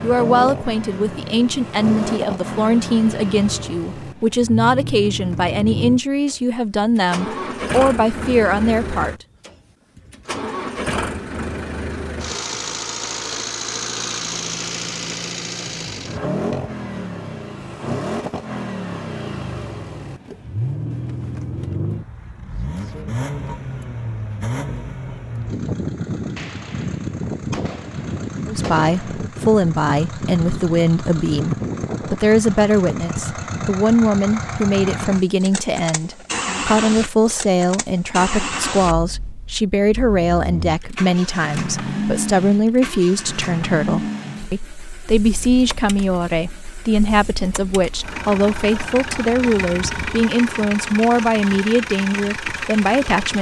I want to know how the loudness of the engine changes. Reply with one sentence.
The loudness of the engine stays about the same.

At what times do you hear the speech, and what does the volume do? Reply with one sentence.
You can hear the speech from 0.0 to 9.2 s, at a steady volume; and from 28.4 to 53.3 s, at a steady volume.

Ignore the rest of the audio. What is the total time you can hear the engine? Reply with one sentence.
You can hear the engine for 53 seconds altogether.